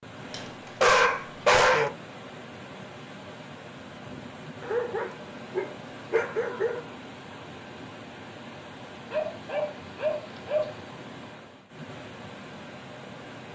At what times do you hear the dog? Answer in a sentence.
The dog can be heard from 0.3 to 1.9 s, from 4.6 to 6.8 s and from 9.1 to 10.8 s.